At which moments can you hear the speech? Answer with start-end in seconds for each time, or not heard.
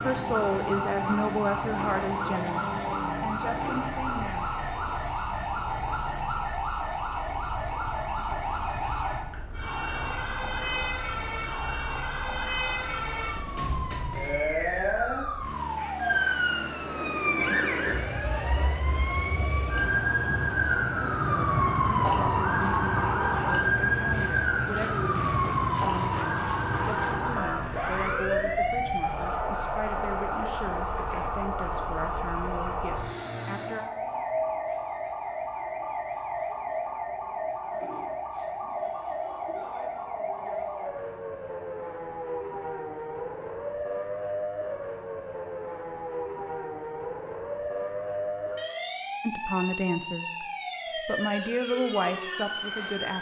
0.0-4.5, 21.0-33.9, 49.2-53.1.